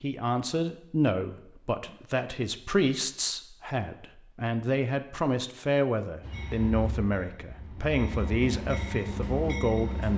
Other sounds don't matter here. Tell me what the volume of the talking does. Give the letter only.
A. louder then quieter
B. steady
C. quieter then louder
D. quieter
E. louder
B.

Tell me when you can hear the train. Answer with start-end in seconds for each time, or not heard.
6.2-10.1.